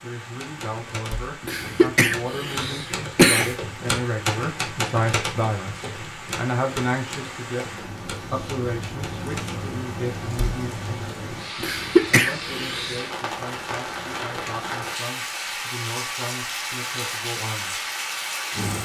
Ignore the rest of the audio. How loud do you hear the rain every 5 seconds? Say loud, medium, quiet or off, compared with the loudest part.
medium, medium, loud, loud.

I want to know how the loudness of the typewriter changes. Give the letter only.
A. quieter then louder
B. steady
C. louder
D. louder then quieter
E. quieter
D.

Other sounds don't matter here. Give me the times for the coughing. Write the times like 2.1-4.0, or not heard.
1.4-3.5, 11.6-13.0.